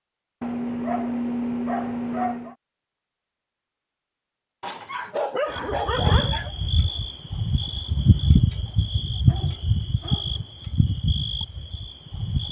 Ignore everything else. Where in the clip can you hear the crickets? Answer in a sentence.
You can hear the crickets from 5.5 to 12.4 s.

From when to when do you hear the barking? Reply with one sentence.
The barking can be heard from 0.4 to 2.5 s, from 4.6 to 6.5 s and from 9.2 to 10.5 s.